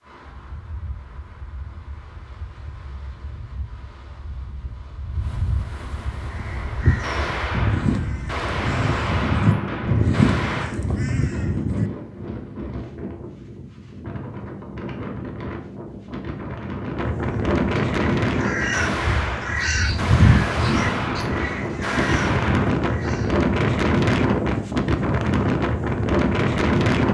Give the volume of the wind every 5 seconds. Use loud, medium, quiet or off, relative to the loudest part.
quiet, quiet, quiet, medium, loud, loud.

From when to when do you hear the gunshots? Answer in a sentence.
The gunshots can be heard from 7.0 to 10.8 s and from 18.7 to 22.7 s.